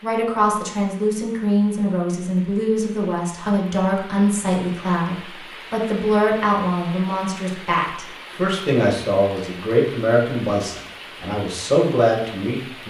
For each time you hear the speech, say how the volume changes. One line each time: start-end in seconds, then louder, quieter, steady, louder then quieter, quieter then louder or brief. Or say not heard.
0.0-12.8 steady.